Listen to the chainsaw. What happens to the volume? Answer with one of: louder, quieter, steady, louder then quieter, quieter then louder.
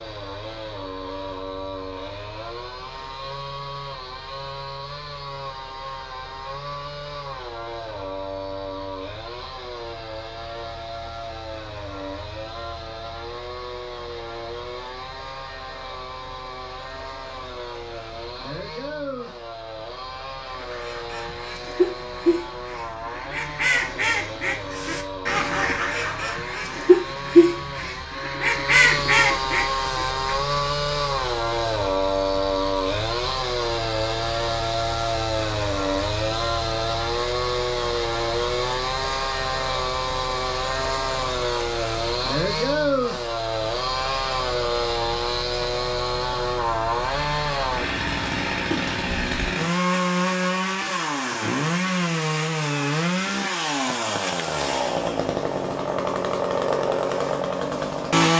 louder.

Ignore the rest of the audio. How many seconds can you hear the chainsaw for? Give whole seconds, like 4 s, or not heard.
58 s.